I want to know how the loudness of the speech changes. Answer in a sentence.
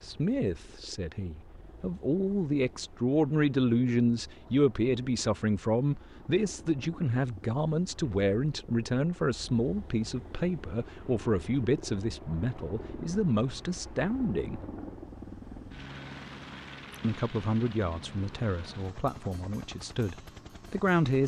The loudness of the speech stays about the same.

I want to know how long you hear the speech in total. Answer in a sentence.
You can hear the speech for 19 seconds altogether.